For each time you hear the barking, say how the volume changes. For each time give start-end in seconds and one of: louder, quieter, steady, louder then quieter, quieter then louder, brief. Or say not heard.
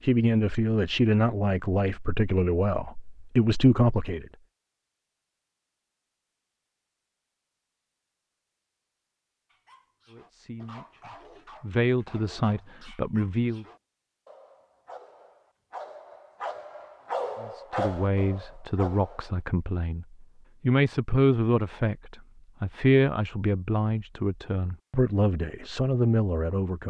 9.5-19.4 louder.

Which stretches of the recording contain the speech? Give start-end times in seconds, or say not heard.
0.0-4.2, 10.1-13.7, 17.4-26.8.